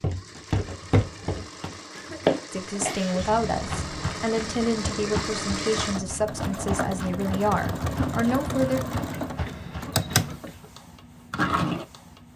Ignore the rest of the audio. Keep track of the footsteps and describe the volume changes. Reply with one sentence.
The volume of the footsteps goes down.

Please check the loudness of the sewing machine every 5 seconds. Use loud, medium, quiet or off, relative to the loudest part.
medium, loud, loud.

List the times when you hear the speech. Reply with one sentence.
You can hear the speech from 2.5 to 8.8 s.